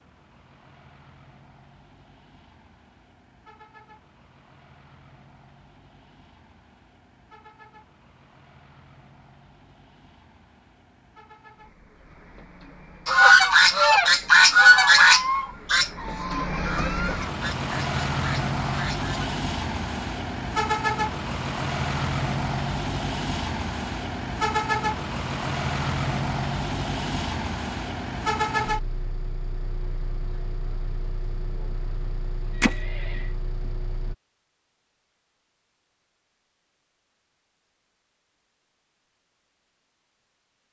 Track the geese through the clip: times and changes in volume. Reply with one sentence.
The geese can be heard from 13.1 to 19.4 s, getting quieter.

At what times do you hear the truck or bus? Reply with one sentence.
You can hear the truck or bus from 0.0 to 34.1 s.